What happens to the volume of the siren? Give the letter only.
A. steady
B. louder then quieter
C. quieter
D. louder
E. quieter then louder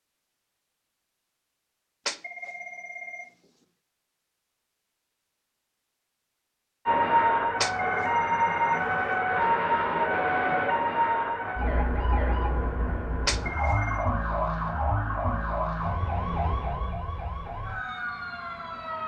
C.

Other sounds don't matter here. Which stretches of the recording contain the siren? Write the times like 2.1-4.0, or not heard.
6.8-19.0.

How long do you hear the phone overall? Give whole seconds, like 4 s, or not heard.
3 s.